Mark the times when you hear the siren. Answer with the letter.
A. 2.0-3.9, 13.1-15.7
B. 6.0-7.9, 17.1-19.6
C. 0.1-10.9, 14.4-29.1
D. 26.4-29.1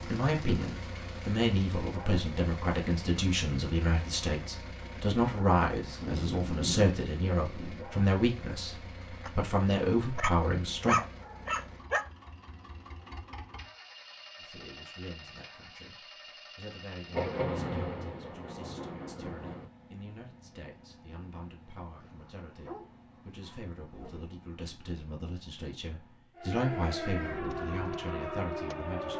D.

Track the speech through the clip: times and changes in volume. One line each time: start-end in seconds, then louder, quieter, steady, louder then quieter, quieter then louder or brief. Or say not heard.
0.1-10.9 steady
14.4-29.1 louder.